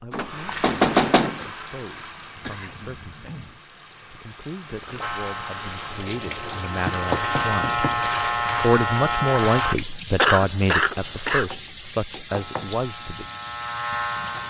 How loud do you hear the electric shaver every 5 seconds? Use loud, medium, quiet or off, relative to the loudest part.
off, loud, medium.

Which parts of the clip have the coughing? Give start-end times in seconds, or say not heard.
2.4-3.6, 10.2-11.6.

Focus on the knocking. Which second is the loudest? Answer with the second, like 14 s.
1 s.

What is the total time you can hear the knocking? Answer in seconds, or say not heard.
4 s.